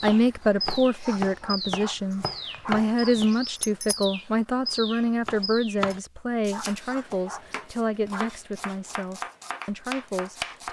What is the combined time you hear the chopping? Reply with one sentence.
The chopping can be heard for 9 seconds in total.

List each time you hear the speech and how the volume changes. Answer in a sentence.
You can hear the speech from 0.0 to 10.6 s, getting quieter.